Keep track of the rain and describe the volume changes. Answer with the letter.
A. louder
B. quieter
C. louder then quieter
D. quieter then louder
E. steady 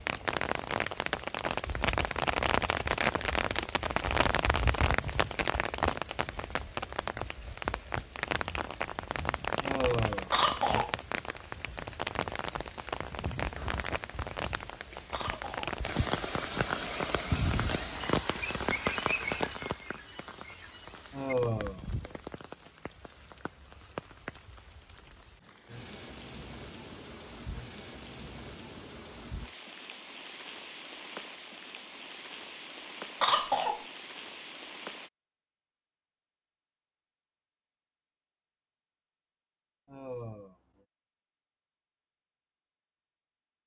B.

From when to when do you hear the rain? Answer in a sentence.
You can hear the rain from 0.0 to 35.1 s.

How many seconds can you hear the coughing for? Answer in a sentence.
The coughing can be heard for 2 seconds in total.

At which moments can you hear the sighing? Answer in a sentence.
The sighing can be heard from 9.6 to 10.8 s, from 21.1 to 22.1 s and from 39.9 to 40.5 s.